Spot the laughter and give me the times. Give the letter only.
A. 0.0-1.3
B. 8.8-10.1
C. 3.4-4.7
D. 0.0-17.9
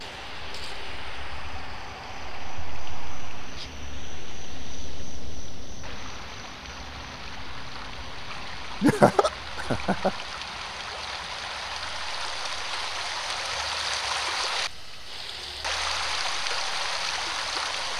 B.